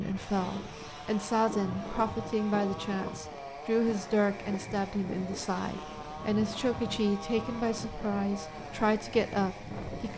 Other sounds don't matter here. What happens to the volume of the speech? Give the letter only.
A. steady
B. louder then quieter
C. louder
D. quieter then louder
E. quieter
A.